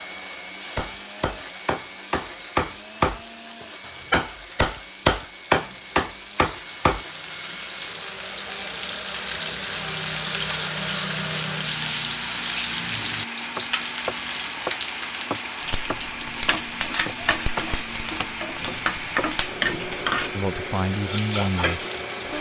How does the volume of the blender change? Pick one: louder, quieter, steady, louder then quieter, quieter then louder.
louder.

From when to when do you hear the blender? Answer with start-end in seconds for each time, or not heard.
0.0-22.3.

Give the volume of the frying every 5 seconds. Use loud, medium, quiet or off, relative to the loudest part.
quiet, medium, loud, loud, loud.